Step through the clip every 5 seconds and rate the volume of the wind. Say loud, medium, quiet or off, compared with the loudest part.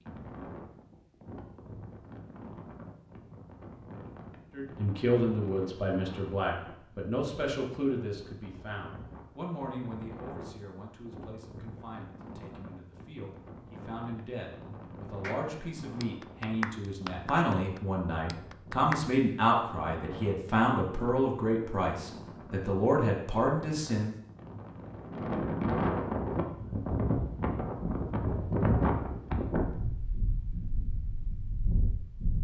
quiet, quiet, quiet, quiet, quiet, loud, medium.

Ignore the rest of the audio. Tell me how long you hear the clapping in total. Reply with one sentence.
You can hear the clapping for 4 seconds altogether.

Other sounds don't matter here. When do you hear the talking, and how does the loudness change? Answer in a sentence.
The talking can be heard from 4.5 to 24.1 s, getting quieter then louder.